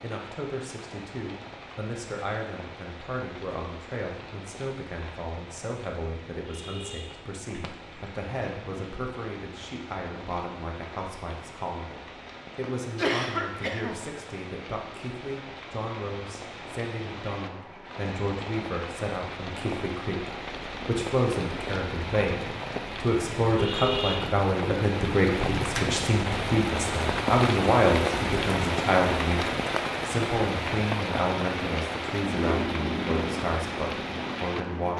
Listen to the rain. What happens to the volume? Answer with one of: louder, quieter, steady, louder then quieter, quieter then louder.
louder.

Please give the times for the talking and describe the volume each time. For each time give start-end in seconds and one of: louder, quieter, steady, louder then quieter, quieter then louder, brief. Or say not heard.
0.0-34.9 louder.